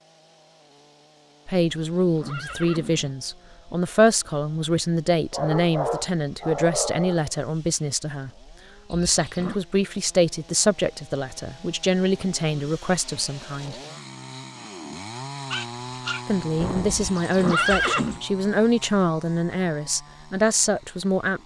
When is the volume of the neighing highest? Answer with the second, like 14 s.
18 s.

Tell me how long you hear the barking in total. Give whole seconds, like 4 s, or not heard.
4 s.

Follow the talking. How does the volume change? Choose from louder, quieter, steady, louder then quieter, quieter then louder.
steady.